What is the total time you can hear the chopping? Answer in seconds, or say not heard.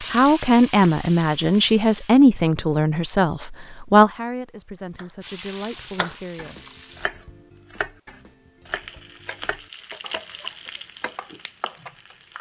7 s.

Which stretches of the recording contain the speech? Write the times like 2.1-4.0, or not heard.
0.0-6.6.